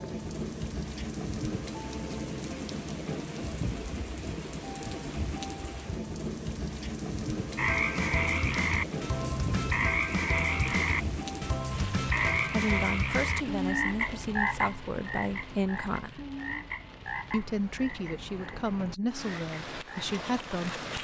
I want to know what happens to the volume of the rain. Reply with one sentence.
The loudness of the rain goes down.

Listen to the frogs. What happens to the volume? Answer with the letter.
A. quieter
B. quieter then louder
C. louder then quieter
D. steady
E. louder
A.